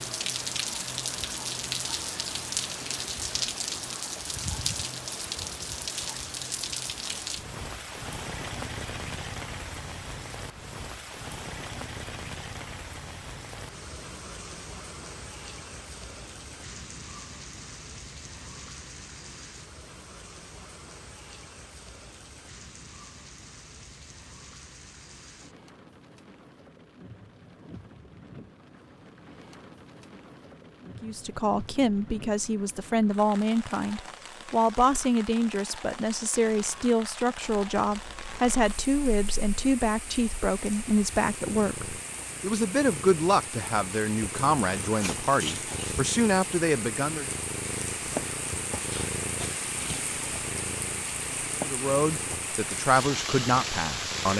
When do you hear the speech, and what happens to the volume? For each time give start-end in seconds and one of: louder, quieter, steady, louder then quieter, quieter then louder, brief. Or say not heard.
31.0-47.3 steady
51.6-54.3 brief.